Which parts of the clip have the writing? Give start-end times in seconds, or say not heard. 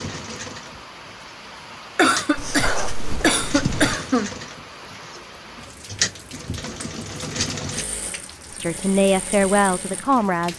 2.4-4.0.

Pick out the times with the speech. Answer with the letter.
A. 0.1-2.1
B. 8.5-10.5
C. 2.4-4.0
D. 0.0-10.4
B.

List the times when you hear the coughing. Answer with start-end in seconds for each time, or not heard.
1.9-4.3.